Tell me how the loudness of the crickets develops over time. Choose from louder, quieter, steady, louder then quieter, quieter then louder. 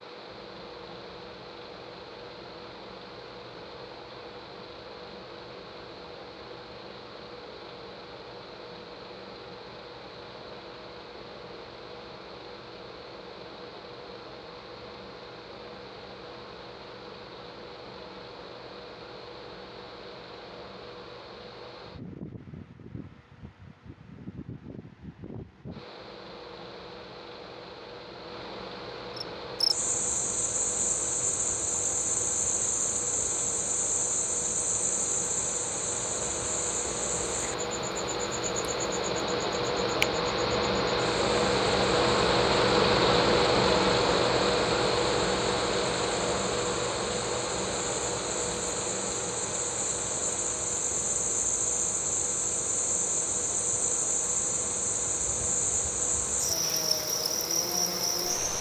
quieter then louder.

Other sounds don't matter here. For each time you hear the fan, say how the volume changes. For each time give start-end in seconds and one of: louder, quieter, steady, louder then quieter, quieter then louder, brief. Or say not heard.
0.0-58.5 louder then quieter.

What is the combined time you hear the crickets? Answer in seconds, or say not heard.
29 s.